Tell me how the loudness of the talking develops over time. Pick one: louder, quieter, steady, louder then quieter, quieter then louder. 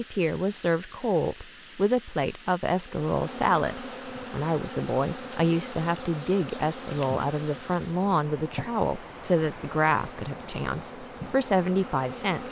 steady.